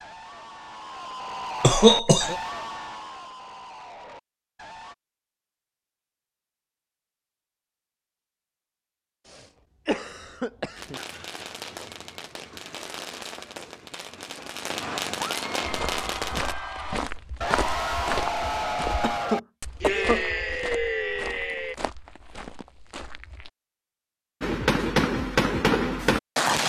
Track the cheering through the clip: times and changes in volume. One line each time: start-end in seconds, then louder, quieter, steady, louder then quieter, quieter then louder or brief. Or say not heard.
0.0-5.0 louder then quieter
14.8-21.8 louder.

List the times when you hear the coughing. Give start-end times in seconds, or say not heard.
1.6-2.4, 9.3-11.0, 19.0-20.2.